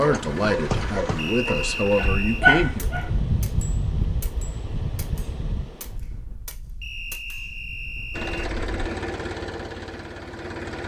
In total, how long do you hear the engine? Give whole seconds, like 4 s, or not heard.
5 s.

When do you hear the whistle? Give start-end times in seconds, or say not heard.
1.1-2.5, 6.8-8.5.